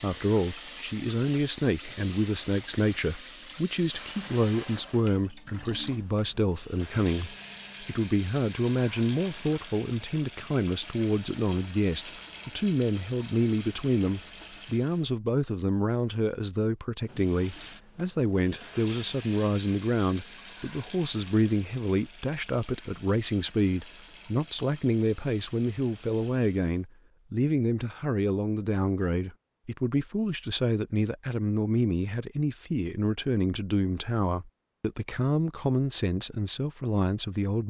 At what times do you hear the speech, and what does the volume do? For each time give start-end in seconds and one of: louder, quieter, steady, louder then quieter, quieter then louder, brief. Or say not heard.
0.0-37.6 steady.